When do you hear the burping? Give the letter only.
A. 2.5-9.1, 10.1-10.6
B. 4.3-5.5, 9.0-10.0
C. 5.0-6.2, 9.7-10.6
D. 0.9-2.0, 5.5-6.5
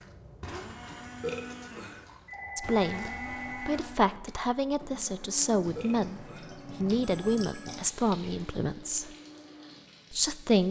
D.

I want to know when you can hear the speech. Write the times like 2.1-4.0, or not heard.
2.5-9.1, 10.1-10.6.